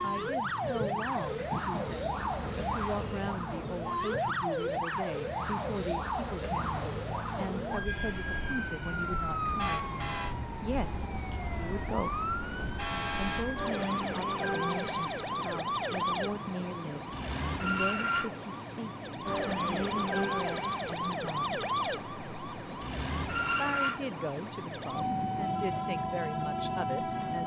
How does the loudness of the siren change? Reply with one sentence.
The loudness of the siren stays about the same.